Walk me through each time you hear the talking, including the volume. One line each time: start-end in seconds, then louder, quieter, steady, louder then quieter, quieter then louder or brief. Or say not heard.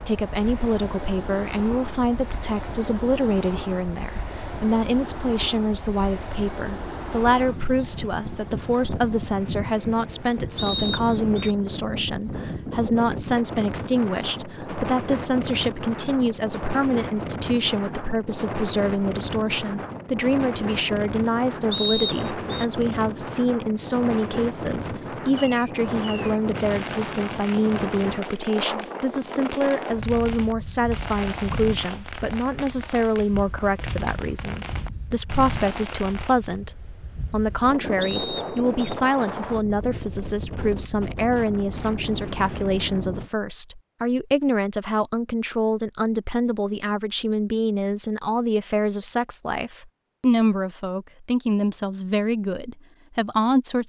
0.0-53.8 steady.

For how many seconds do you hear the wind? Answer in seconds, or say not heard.
43 s.